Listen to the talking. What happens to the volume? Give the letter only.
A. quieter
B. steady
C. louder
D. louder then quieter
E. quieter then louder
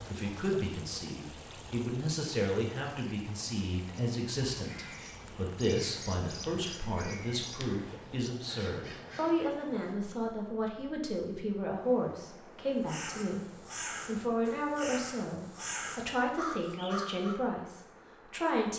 B.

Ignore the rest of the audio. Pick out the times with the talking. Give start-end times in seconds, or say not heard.
0.1-18.7.